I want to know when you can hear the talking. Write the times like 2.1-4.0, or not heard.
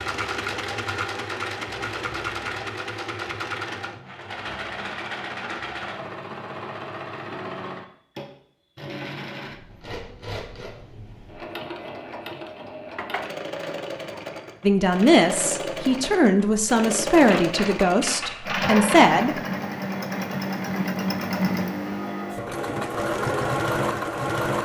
14.6-19.4.